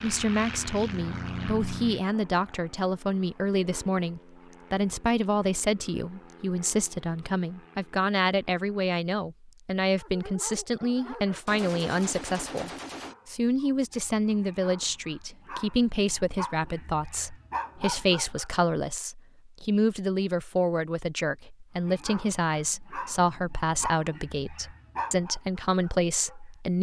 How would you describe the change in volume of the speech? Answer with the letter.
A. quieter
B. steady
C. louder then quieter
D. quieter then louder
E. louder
B.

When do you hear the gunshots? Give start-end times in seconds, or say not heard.
11.4-13.2.